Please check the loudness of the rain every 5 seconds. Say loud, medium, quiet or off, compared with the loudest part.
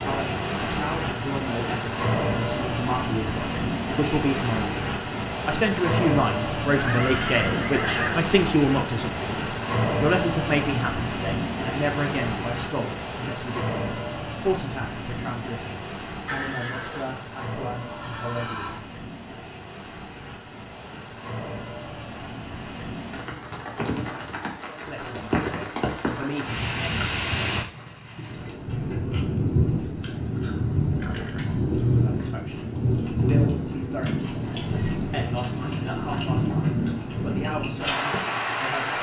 loud, loud, loud, medium, medium, loud, loud, loud.